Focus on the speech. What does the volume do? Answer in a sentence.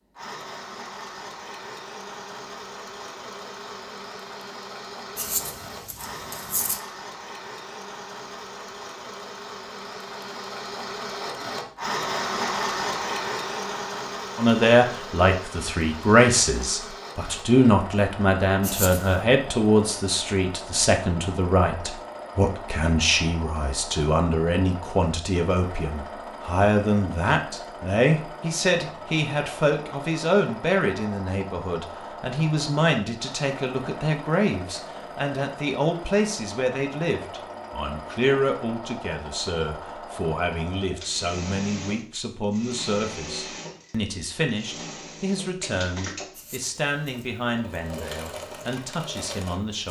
The loudness of the speech goes down.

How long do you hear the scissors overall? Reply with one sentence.
The scissors can be heard for 3 seconds in total.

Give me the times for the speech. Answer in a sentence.
The speech can be heard from 14.3 to 49.8 s.